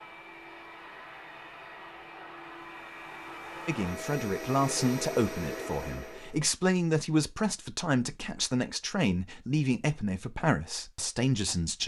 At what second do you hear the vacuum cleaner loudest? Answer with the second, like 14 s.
5 s.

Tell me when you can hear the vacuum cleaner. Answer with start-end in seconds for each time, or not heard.
0.0-6.5.